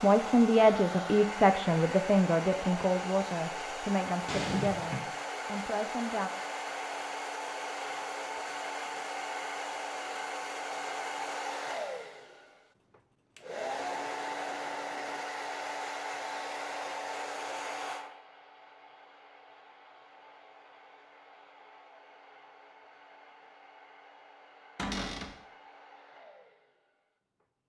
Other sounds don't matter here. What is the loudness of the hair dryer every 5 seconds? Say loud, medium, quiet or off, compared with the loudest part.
loud, loud, loud, loud, quiet, quiet.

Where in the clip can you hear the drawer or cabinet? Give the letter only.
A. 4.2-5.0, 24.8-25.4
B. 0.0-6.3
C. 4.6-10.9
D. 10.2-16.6
A.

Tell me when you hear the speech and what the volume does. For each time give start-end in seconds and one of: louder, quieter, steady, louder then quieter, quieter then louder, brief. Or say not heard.
0.0-6.3 quieter.